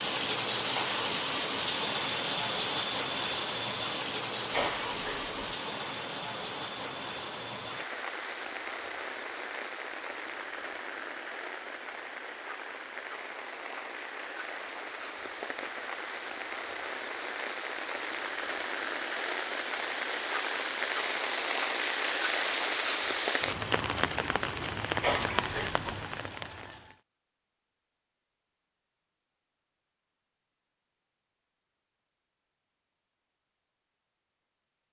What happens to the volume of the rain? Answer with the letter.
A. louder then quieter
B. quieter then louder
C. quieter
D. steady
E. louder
B.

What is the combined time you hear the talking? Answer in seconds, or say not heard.
not heard.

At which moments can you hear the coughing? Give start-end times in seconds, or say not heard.
4.5-5.5, 25.0-26.1.